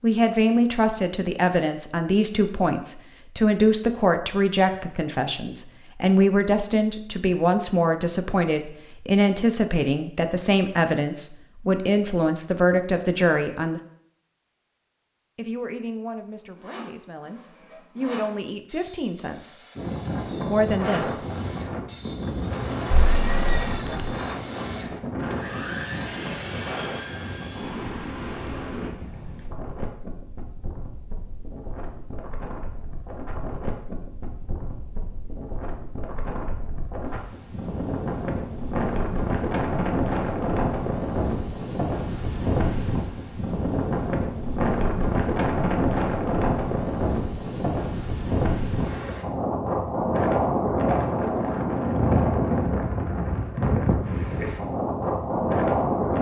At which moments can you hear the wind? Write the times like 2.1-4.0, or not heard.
19.8-56.1.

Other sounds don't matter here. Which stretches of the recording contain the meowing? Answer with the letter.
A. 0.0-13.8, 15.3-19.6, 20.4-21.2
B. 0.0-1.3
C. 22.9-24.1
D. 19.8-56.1
C.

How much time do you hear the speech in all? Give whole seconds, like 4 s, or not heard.
19 s.